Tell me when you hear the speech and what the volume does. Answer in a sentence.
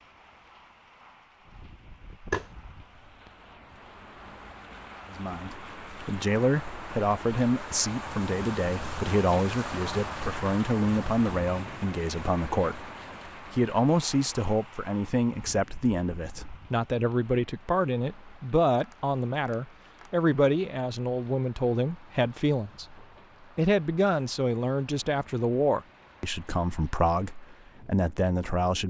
You can hear the speech from 5.1 to 12.8 s, at a steady volume; and from 13.5 to 28.8 s, at a steady volume.